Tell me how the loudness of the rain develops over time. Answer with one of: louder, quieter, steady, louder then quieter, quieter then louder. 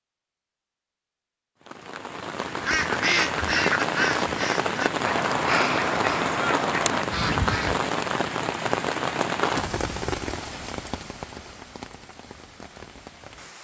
quieter.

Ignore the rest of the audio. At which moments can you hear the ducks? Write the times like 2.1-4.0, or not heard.
2.5-7.8.